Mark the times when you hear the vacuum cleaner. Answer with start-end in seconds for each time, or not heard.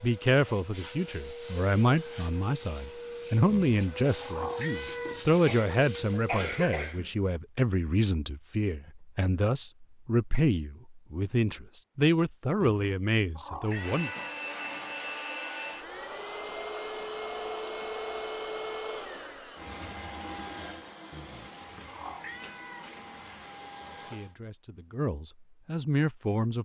0.0-6.5, 13.7-24.4.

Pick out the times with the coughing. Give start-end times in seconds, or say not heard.
5.5-7.1.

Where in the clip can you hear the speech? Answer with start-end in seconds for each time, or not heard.
0.0-14.1, 23.9-26.5.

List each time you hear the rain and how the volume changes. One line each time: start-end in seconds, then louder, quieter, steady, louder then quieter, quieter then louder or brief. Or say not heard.
not heard.